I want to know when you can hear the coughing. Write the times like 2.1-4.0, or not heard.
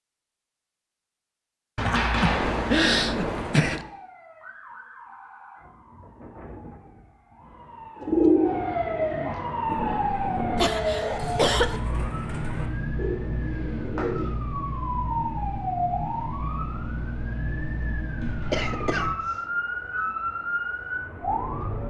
1.9-3.8, 10.6-11.8, 18.5-19.3.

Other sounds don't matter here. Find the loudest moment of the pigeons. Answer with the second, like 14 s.
8 s.